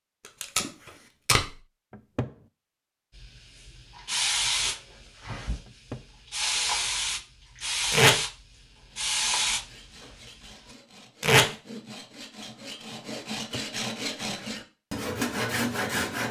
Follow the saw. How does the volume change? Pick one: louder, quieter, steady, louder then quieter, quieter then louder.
louder.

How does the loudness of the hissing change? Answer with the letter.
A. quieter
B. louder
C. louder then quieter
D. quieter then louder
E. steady
D.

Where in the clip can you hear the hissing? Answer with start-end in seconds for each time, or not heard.
3.1-10.8.